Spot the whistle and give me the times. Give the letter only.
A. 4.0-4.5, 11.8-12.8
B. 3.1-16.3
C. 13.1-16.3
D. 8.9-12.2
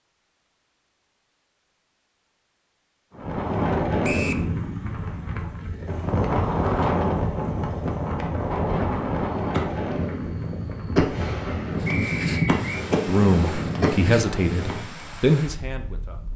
A.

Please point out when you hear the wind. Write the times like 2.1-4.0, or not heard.
3.1-16.3.